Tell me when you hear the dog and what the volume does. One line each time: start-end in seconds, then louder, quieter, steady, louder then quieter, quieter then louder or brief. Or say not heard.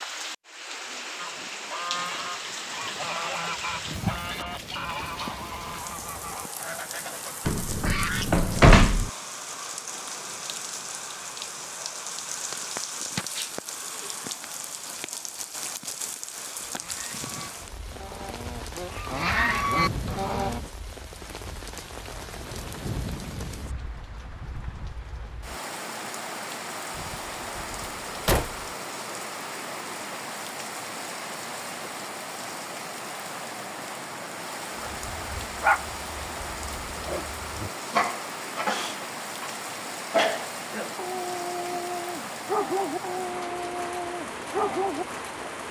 34.8-45.5 steady.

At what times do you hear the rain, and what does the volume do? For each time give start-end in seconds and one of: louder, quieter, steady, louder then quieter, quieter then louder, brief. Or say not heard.
0.0-45.6 steady.